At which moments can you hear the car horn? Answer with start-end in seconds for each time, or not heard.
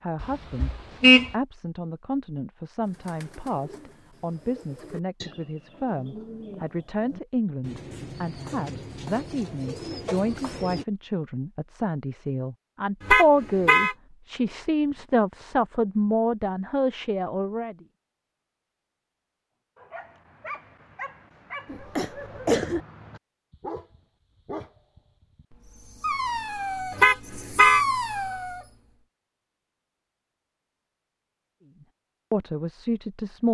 0.2-1.3, 13.1-13.9, 26.9-27.9.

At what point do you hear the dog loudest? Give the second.
28 s.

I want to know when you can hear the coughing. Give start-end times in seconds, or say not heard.
21.6-22.8.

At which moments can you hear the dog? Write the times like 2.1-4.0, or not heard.
19.8-28.7.